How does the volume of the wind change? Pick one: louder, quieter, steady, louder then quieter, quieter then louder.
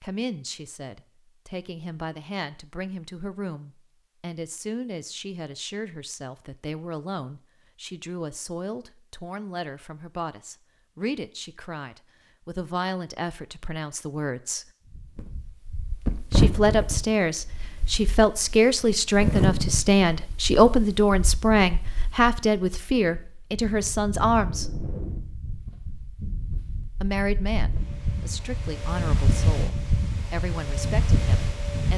quieter then louder.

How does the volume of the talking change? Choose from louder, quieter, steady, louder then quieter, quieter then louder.
louder then quieter.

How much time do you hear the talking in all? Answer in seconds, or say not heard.
28 s.